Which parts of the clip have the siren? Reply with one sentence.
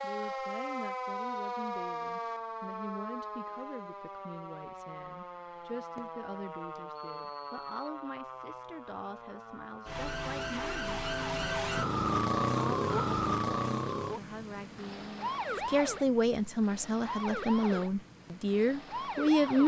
You can hear the siren from 0.0 to 19.6 s.